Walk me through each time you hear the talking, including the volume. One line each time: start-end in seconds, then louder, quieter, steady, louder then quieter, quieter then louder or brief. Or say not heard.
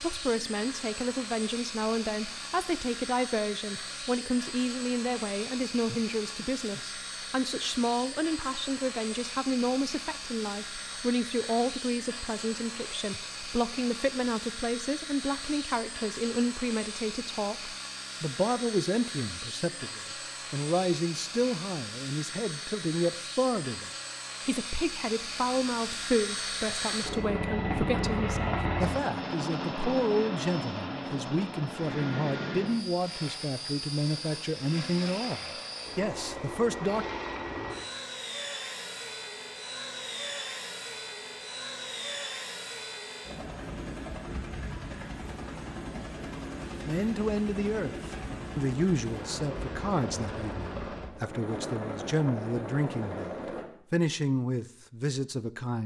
0.0-37.0 steady
46.9-55.8 quieter then louder.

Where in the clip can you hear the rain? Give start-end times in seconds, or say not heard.
not heard.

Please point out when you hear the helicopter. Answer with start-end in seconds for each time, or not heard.
0.0-53.6.